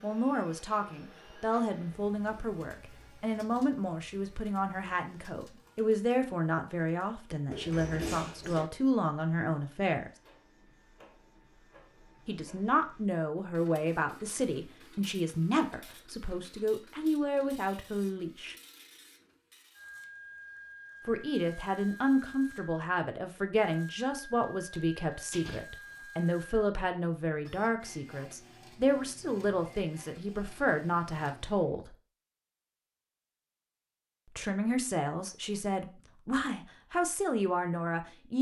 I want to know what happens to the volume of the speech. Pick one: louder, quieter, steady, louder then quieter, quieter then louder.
steady.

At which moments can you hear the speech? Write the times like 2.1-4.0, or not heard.
0.0-10.1, 12.2-18.6, 21.1-31.9, 34.4-38.3.